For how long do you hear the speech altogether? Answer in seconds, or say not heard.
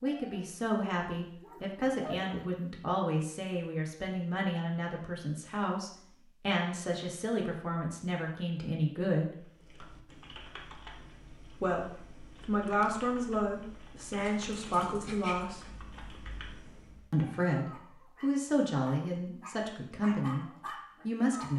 17 s.